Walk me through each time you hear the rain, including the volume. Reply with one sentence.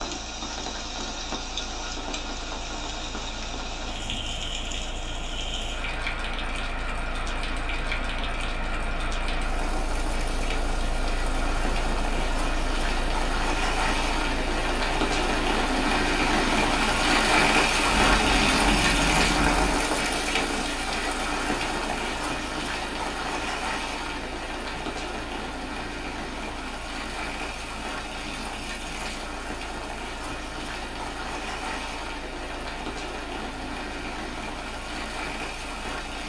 You can hear the rain from 0.0 to 36.2 s, getting louder then quieter.